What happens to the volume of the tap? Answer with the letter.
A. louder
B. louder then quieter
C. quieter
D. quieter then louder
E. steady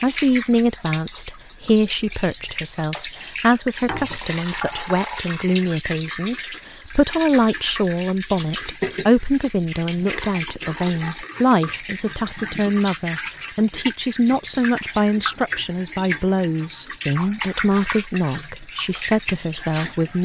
E.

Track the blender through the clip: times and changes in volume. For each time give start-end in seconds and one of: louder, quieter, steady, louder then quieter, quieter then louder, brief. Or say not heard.
not heard.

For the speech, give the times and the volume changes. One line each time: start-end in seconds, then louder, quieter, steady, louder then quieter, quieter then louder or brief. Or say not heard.
0.0-20.2 steady.